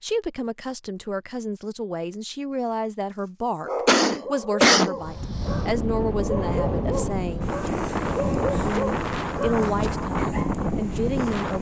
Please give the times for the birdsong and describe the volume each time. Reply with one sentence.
You can't hear the birdsong here.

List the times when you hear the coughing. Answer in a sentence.
The coughing can be heard from 3.9 to 5.0 s.